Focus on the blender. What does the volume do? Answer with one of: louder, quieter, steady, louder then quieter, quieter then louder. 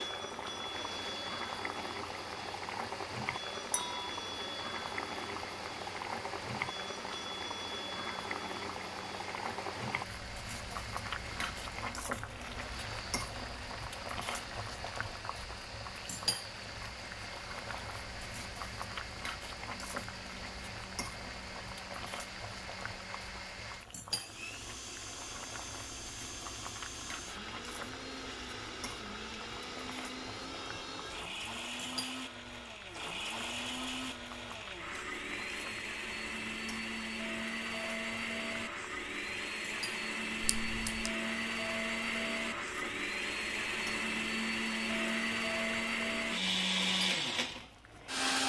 louder.